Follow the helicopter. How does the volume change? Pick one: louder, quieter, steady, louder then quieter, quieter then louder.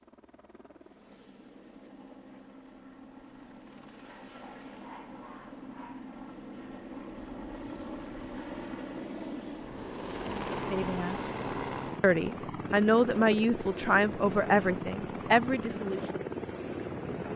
louder.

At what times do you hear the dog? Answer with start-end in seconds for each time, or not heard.
4.0-6.1.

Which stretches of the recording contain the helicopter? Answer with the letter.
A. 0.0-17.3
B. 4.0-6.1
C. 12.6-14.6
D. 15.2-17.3
A.